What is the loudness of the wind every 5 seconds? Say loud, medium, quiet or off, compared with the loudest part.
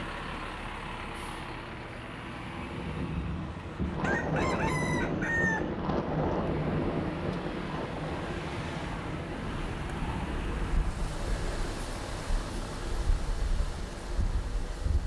loud, loud, medium.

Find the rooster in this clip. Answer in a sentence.
You can hear the rooster from 4.0 to 5.7 s.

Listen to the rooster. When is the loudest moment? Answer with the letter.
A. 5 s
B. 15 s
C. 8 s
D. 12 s
A.